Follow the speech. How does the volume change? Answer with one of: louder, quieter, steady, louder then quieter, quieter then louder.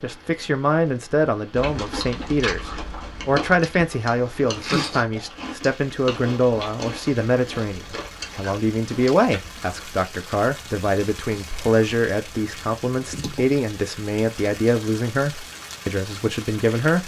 steady.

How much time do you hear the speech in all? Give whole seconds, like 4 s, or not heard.
17 s.